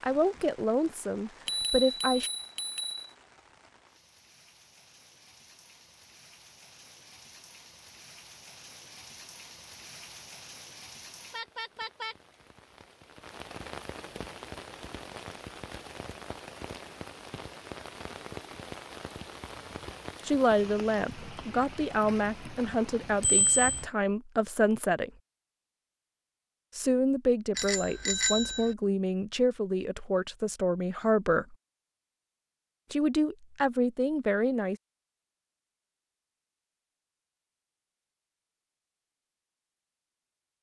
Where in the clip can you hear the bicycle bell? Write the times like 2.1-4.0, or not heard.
1.4-3.1, 23.2-23.8, 27.6-28.7.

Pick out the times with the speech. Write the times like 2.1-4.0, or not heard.
0.0-2.3, 20.2-25.1, 26.8-31.6, 32.9-34.8.